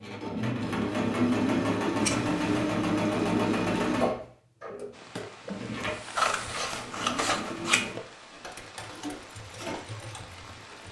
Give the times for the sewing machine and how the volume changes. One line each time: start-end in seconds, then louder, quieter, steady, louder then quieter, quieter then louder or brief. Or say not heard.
0.0-10.8 quieter.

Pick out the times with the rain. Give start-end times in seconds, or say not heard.
4.9-10.8.